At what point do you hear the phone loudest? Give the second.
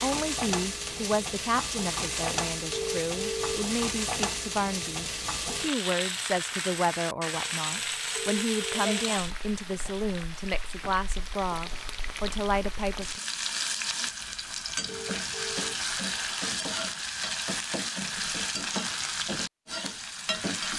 3 s.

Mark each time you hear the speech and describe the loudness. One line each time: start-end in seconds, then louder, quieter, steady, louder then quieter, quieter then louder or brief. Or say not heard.
0.0-13.2 steady.